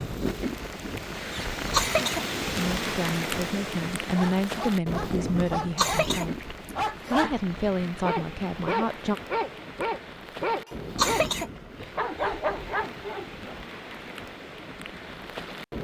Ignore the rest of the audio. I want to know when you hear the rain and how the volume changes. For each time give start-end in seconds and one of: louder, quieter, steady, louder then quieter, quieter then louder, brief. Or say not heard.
0.0-15.7 quieter.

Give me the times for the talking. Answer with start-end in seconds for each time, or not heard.
2.5-9.2.